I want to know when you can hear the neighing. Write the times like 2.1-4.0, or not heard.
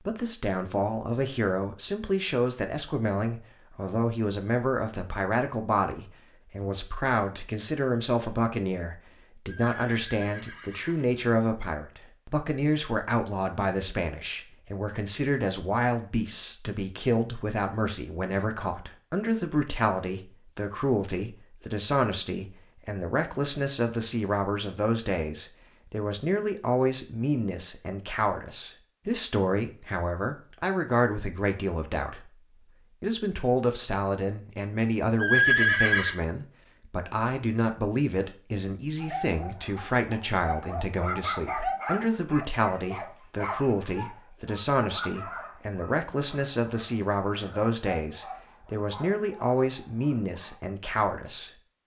9.4-11.2, 35.2-36.1.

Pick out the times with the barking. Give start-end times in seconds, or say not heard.
39.0-50.5.